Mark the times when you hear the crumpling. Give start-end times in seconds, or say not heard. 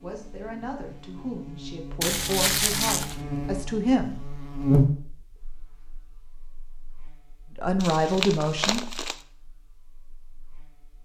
2.0-3.2, 7.8-9.2.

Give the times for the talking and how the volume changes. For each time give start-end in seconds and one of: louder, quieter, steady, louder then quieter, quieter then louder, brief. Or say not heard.
0.0-4.2 louder
7.5-8.9 brief.